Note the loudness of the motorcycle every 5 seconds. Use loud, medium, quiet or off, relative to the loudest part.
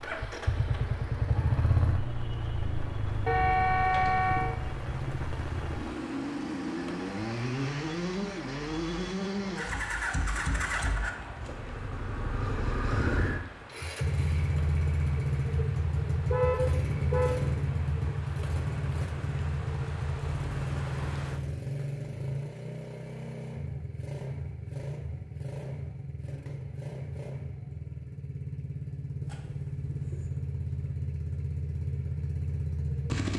loud, loud, loud, loud, loud, medium, loud.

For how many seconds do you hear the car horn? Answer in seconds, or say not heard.
4 s.